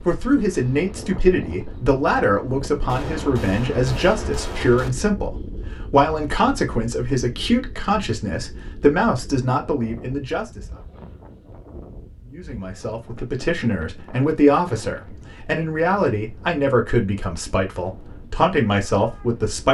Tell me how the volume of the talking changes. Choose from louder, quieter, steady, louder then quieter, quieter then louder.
steady.